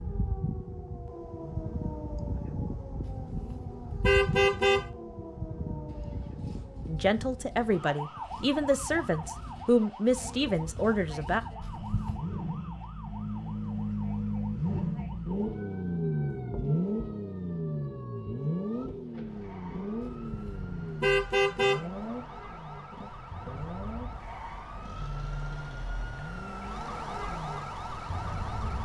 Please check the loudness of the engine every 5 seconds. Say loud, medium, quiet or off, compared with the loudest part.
quiet, quiet, loud, loud, medium, quiet.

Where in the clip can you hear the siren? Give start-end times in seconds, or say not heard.
0.0-28.8.